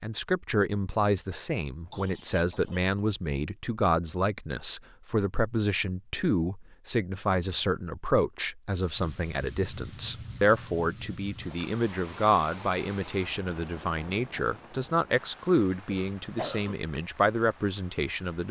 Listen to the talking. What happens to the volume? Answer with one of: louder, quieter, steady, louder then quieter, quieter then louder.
steady.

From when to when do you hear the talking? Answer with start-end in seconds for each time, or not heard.
0.0-18.4.